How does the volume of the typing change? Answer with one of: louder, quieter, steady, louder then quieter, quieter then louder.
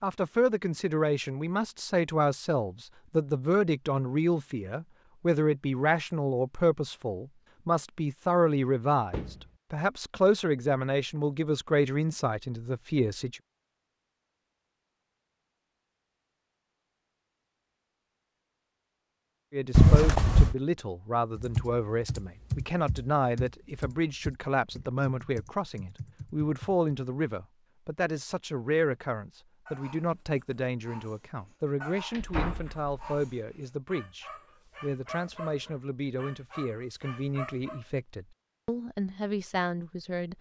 quieter.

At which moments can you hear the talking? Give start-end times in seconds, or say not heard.
0.0-13.4, 19.5-40.3.